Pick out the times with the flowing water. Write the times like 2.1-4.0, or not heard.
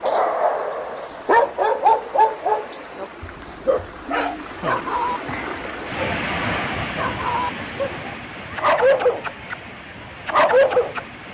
0.0-11.2.